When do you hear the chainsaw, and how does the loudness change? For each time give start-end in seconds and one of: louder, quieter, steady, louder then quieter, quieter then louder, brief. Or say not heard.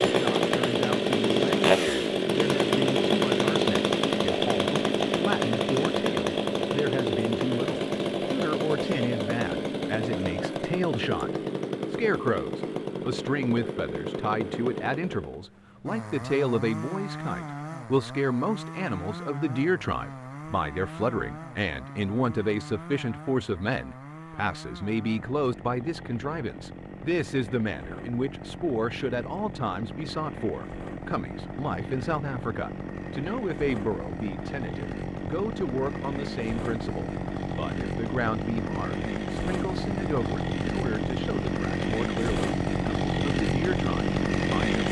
0.0-44.8 quieter then louder.